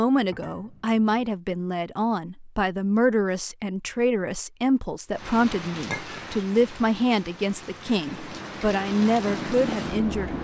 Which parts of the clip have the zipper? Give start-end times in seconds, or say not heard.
not heard.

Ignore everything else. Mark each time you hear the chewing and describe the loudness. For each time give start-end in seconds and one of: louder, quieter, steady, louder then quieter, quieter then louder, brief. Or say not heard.
not heard.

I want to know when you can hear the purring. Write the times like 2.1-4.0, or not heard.
8.1-10.3.